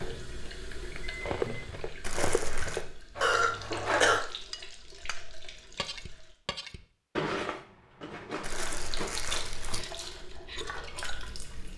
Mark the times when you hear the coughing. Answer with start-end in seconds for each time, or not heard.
3.2-4.2.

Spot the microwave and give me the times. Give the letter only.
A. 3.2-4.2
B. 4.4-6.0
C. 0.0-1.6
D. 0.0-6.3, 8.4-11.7
C.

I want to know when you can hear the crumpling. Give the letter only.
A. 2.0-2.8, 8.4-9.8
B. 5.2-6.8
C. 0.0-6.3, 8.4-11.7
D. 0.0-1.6
A.